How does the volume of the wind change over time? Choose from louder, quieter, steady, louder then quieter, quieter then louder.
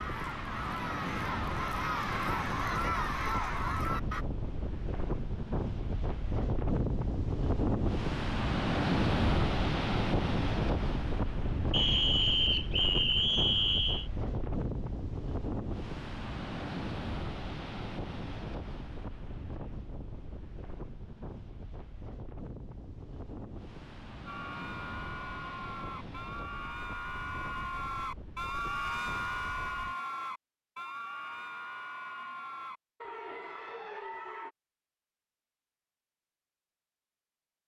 louder then quieter.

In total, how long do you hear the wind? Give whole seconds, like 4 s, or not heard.
30 s.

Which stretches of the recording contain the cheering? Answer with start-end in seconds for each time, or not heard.
0.0-4.2, 24.2-34.5.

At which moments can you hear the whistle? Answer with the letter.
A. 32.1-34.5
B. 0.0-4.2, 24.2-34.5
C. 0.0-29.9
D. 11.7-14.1
D.